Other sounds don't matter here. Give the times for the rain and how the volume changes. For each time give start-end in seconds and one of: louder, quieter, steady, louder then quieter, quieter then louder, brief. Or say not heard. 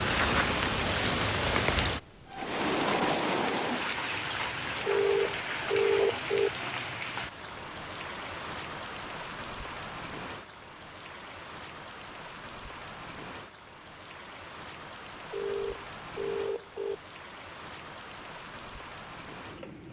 0.0-19.8 quieter.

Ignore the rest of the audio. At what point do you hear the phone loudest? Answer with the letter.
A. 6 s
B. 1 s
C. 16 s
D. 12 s
A.